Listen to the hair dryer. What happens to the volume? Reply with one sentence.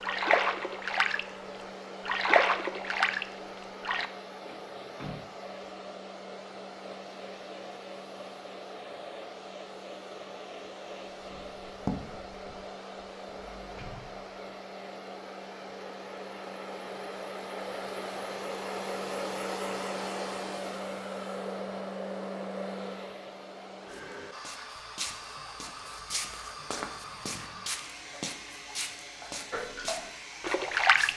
The volume of the hair dryer goes up, then down.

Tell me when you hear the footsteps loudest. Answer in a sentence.
The volume of the footsteps peaks at 12 seconds.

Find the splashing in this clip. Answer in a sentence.
You can hear the splashing from 0.0 to 1.2 s, from 2.0 to 4.0 s and from 29.5 to 31.1 s.